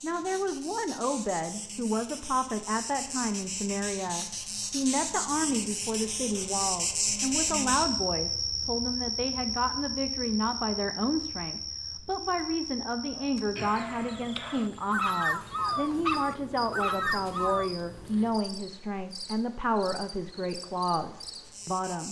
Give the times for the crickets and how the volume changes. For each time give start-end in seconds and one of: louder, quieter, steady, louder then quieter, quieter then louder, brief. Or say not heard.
0.0-22.0 louder then quieter.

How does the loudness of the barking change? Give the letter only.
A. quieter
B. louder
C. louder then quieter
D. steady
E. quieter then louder
B.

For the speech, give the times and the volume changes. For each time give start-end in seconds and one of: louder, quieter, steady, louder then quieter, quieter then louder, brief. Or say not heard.
0.0-22.0 steady.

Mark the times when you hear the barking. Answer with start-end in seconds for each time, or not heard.
13.1-17.7.